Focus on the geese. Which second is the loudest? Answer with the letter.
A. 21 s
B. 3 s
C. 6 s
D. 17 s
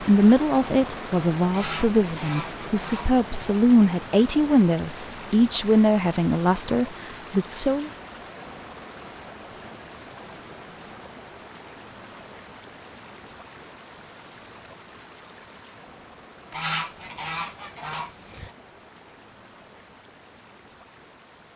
D.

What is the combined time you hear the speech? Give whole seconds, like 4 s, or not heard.
8 s.